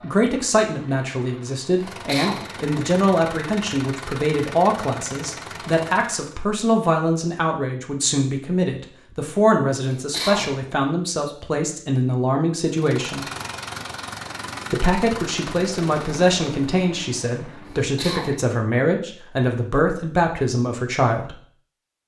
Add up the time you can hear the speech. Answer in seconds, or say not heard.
20 s.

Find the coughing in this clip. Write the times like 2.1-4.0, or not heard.
1.9-2.5, 9.8-10.7, 17.6-18.6.